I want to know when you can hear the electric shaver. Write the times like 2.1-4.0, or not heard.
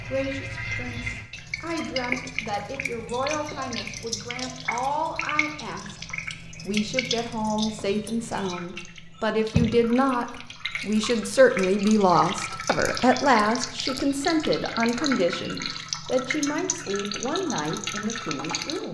not heard.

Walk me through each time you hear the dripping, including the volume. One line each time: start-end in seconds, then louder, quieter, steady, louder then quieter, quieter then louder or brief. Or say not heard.
0.0-18.8 steady.